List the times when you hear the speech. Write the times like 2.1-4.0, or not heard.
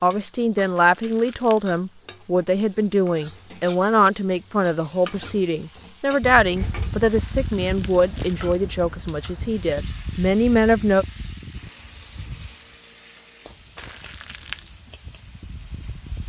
0.0-11.1.